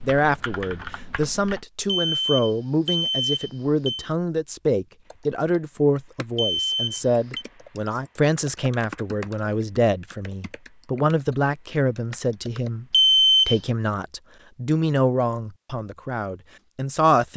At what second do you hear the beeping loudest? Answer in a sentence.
The loudest moment of the beeping is at 13 seconds.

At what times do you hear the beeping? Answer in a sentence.
The beeping can be heard from 1.9 to 4.0 s, from 6.3 to 7.5 s and from 12.9 to 13.6 s.